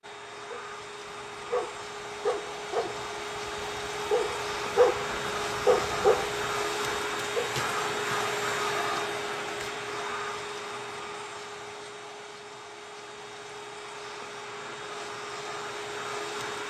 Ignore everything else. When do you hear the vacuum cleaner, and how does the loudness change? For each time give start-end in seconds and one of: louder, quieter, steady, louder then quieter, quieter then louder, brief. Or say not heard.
0.0-16.6 louder then quieter.